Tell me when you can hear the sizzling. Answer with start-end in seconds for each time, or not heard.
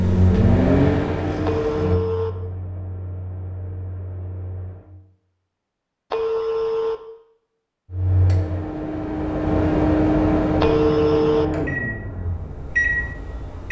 not heard.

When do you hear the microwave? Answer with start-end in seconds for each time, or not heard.
0.0-4.9, 7.9-13.6.